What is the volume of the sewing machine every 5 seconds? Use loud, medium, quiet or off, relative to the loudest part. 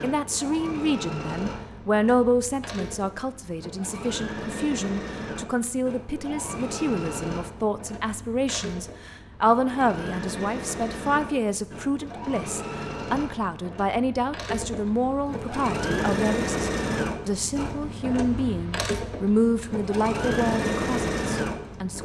medium, medium, medium, loud, loud.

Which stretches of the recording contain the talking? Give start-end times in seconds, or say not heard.
0.0-22.0.